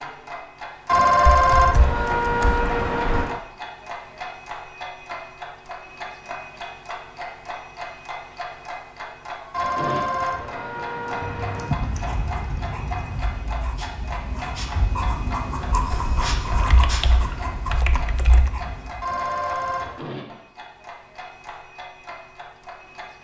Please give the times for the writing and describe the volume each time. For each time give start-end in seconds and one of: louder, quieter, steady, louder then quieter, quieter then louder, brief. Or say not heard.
11.6-19.1 louder then quieter.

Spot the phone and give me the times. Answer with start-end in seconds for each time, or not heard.
0.8-3.4, 9.5-11.7, 19.0-20.0.